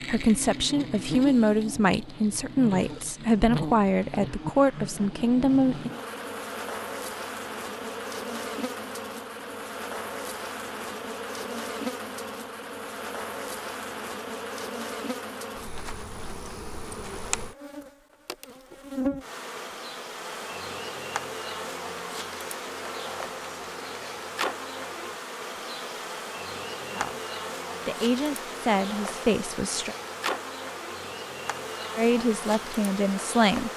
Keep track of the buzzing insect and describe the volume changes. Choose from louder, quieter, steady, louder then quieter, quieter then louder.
steady.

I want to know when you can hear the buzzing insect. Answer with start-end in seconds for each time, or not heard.
0.0-33.7.